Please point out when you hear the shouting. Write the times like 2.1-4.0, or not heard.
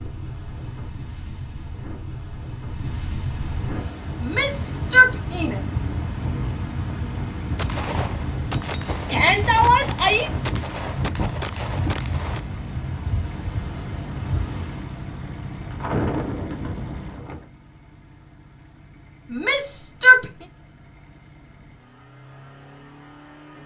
4.2-5.6, 9.1-10.3, 19.3-20.2.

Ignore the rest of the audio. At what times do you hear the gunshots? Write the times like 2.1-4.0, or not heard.
7.5-12.4.